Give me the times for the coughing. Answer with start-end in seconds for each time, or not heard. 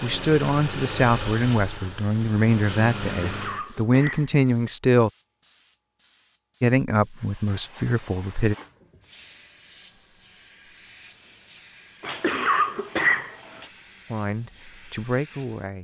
3.1-4.3, 12.0-13.7.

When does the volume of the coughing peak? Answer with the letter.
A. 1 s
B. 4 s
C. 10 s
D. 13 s
D.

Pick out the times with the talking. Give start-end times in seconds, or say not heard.
0.0-5.1, 6.6-8.6, 14.1-15.8.